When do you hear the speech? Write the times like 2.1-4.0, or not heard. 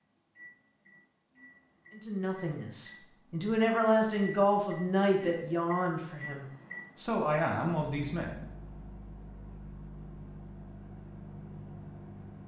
1.9-8.4.